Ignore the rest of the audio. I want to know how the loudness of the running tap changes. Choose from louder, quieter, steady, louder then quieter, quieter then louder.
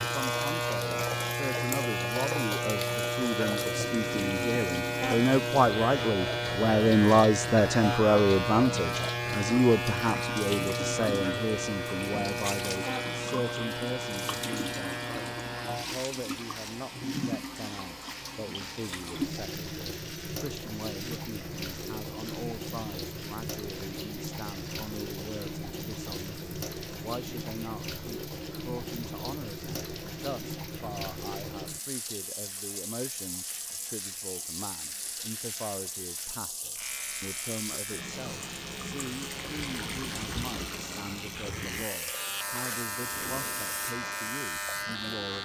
steady.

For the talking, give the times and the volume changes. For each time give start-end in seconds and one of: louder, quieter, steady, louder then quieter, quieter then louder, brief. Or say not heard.
0.0-45.4 quieter.